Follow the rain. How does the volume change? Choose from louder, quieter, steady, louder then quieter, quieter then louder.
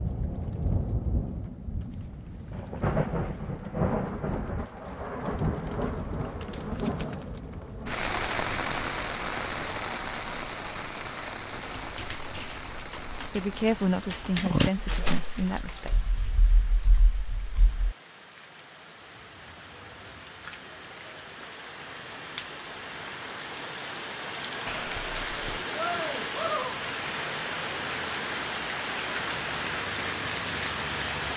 quieter then louder.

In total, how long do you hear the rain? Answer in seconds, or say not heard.
31 s.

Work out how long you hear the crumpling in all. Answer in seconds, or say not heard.
3 s.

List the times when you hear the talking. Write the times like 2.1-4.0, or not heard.
13.2-15.9.